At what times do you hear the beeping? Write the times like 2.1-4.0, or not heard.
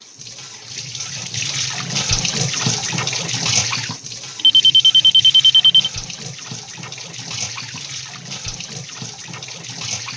4.3-5.9.